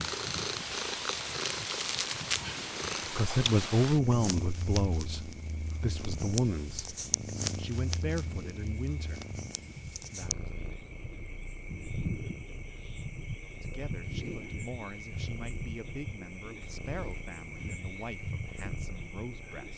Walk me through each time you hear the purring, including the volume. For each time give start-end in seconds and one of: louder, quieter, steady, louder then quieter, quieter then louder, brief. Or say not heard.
0.0-19.7 quieter.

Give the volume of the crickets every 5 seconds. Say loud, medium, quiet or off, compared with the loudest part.
medium, medium, loud, loud.